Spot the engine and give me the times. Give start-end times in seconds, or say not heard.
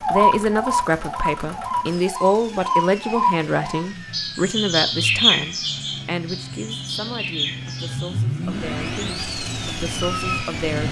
0.0-10.8.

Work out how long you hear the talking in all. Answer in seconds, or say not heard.
11 s.